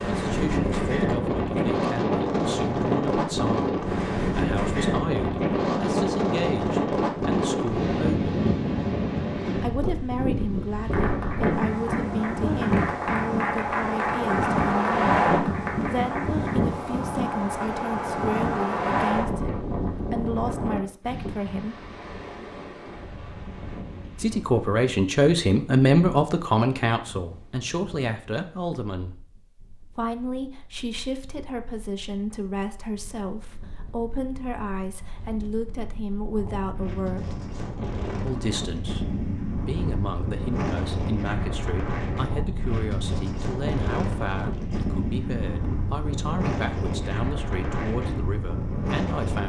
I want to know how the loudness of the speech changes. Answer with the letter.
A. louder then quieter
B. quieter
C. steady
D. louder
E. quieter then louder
A.